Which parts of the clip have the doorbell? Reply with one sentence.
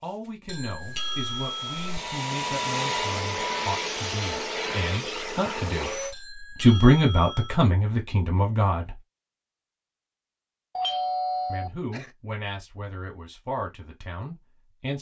You can hear the doorbell from 0.5 to 2.0 s, from 6.1 to 7.7 s and from 10.8 to 12.1 s.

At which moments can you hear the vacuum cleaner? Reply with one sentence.
The vacuum cleaner can be heard from 0.0 to 6.2 s.